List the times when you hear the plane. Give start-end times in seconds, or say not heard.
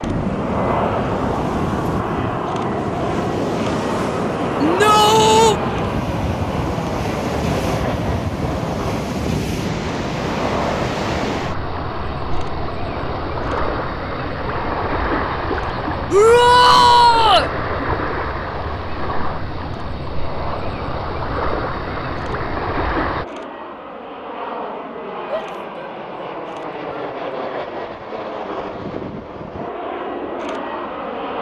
0.0-31.3.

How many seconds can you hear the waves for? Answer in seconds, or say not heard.
23 s.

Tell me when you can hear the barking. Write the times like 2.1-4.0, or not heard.
not heard.